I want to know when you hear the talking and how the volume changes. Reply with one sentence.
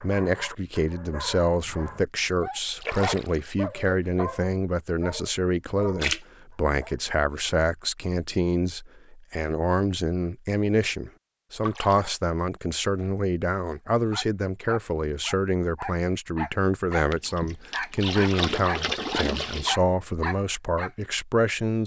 The talking can be heard from 0.0 to 21.8 s, at a steady volume.